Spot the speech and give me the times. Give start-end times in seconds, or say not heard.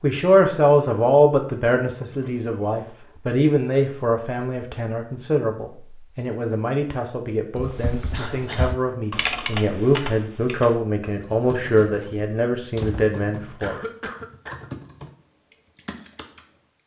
0.0-13.8.